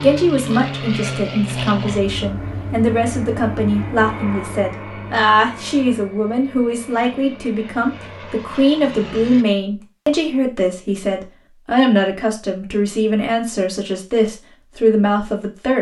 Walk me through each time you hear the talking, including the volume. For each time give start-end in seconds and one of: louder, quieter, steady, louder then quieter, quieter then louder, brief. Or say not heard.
0.0-15.7 steady.